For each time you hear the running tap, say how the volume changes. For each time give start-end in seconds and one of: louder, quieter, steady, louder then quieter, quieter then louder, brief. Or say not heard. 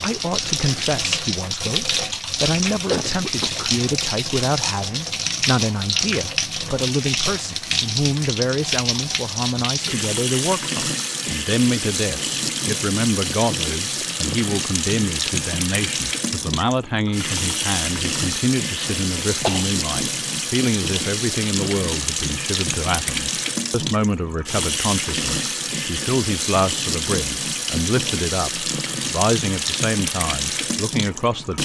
0.0-31.6 steady.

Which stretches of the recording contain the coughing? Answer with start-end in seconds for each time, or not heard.
2.9-3.7, 18.8-19.6.